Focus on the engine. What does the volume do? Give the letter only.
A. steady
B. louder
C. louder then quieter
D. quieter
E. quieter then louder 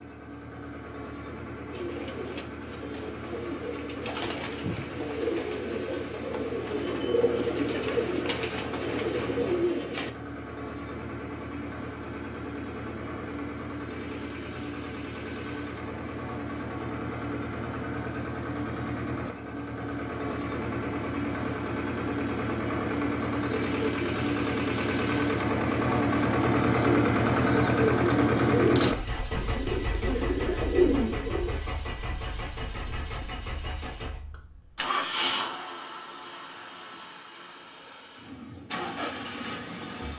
C.